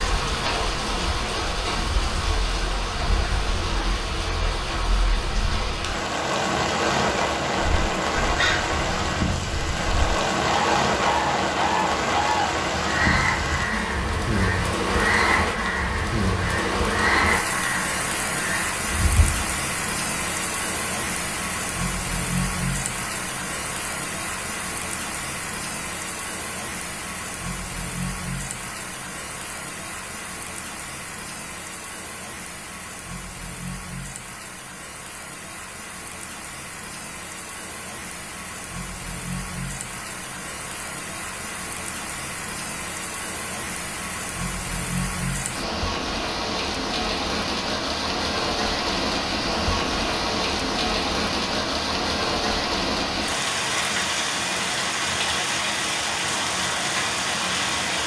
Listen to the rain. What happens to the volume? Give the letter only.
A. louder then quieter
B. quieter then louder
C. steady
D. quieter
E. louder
B.